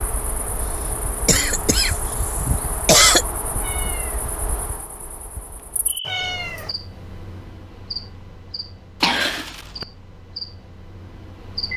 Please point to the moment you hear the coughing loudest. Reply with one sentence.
The loudest moment of the coughing is at 3 seconds.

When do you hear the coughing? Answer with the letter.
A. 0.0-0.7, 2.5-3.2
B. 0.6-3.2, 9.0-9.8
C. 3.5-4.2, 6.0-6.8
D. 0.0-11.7
B.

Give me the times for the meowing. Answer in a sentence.
The meowing can be heard from 3.5 to 4.2 s and from 6.0 to 6.8 s.